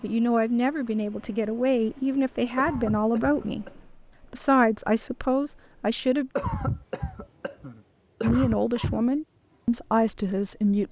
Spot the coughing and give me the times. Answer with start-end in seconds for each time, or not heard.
2.5-3.8, 6.3-9.1.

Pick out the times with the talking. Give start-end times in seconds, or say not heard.
0.0-6.3, 8.2-10.8.